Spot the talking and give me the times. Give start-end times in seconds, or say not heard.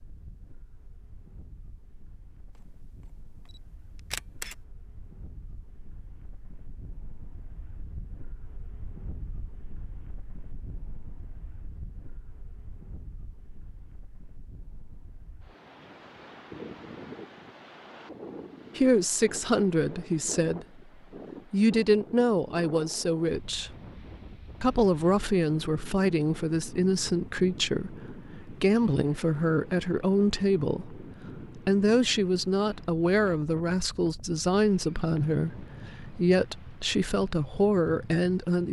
18.8-20.8, 21.5-23.8, 24.6-38.6.